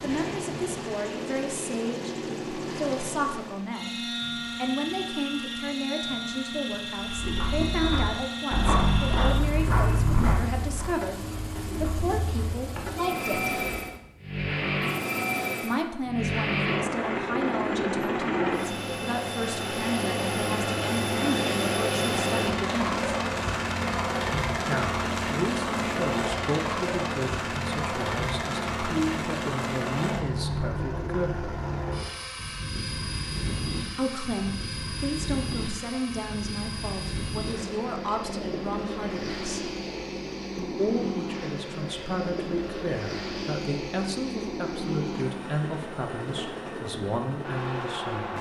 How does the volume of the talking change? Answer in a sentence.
The volume of the talking stays about the same.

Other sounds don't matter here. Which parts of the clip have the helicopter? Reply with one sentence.
The helicopter can be heard from 0.0 to 48.3 s.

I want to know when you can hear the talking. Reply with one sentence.
The talking can be heard from 0.0 to 13.6 s, from 15.6 to 23.1 s, from 24.6 to 31.5 s, from 34.0 to 39.7 s and from 40.5 to 48.3 s.